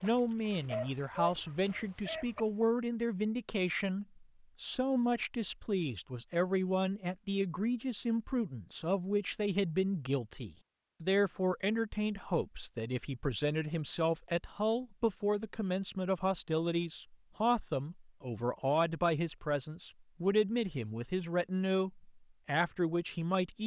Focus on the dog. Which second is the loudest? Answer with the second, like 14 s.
1 s.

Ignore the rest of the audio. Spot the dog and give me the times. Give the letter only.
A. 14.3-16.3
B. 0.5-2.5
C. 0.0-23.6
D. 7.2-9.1
B.